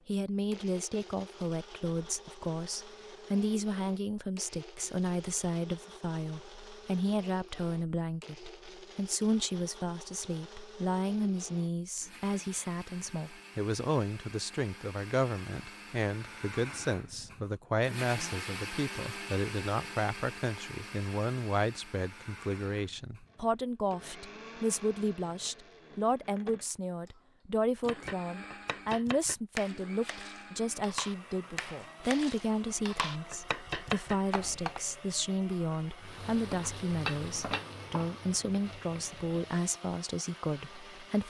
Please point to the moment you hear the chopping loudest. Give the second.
34 s.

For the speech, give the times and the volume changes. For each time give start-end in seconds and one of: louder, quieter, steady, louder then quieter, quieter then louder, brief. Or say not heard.
0.1-41.2 steady.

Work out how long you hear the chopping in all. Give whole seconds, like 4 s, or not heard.
7 s.